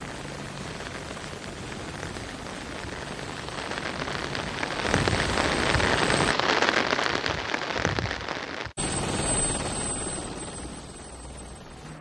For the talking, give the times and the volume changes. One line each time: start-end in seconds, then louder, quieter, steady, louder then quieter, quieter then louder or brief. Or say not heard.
not heard.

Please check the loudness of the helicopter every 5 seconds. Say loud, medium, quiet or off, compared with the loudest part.
medium, loud, medium.